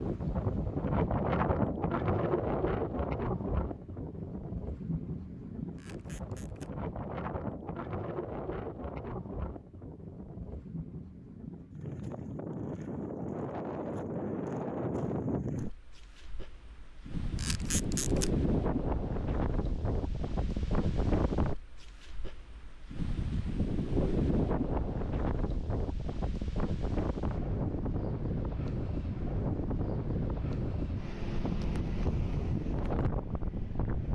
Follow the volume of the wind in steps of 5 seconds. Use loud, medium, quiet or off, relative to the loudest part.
loud, medium, medium, loud, loud, loud, loud.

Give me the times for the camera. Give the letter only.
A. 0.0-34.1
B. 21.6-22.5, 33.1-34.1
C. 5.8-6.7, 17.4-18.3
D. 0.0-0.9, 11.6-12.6
C.